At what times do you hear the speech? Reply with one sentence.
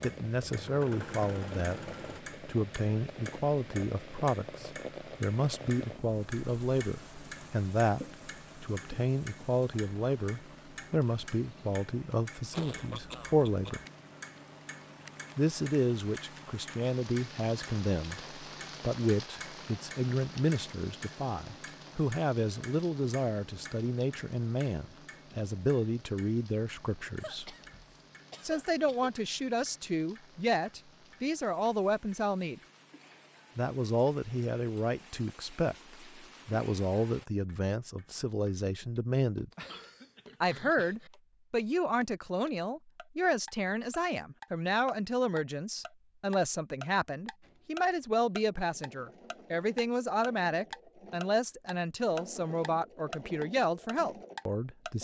You can hear the speech from 0.0 to 13.8 s, from 15.3 to 27.5 s, from 28.4 to 32.6 s, from 33.5 to 39.5 s and from 40.4 to 54.9 s.